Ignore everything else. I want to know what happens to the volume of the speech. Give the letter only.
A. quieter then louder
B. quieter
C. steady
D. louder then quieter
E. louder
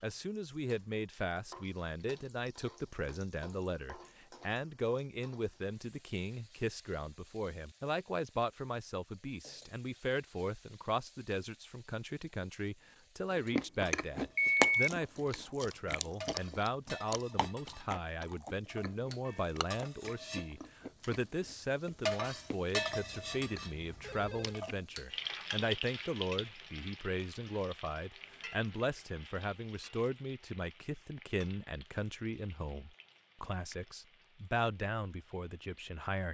C.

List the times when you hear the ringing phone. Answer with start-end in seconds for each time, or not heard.
14.3-14.9, 22.9-24.6.